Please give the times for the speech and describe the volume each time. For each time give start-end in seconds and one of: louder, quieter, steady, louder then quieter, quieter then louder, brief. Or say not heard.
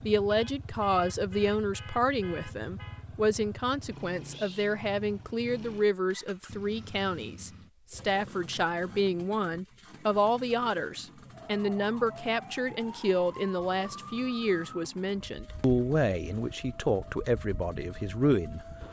0.0-18.6 steady.